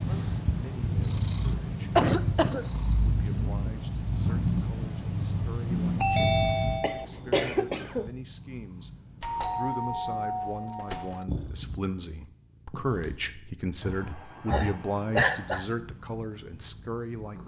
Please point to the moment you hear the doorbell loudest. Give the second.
6 s.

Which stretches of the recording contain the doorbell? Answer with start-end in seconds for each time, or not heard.
6.0-7.0, 9.2-11.2.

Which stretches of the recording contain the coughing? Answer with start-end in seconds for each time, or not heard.
1.9-2.6, 6.8-8.1, 13.8-15.7.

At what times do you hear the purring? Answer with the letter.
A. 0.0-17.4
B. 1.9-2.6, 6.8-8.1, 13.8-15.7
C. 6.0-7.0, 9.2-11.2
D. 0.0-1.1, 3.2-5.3
A.